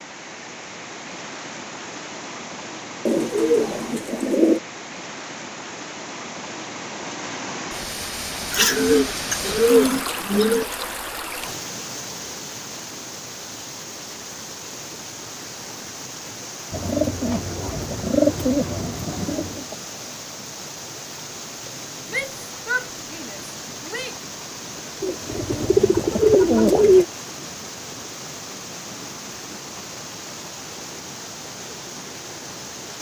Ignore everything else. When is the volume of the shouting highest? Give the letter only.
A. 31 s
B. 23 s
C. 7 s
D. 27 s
B.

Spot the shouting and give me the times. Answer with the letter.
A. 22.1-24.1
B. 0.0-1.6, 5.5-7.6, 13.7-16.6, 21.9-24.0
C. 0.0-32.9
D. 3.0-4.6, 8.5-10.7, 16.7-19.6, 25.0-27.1
A.